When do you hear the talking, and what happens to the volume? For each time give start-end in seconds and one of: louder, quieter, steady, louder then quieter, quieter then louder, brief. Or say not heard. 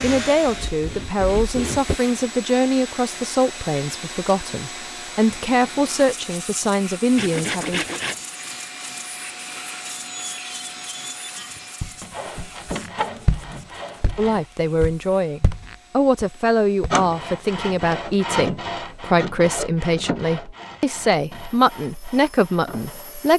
0.0-7.8 steady
14.2-23.3 steady.